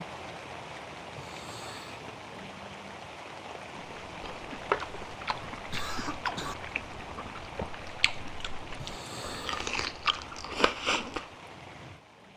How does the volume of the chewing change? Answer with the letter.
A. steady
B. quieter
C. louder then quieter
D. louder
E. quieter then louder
E.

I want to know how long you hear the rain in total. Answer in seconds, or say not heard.
12 s.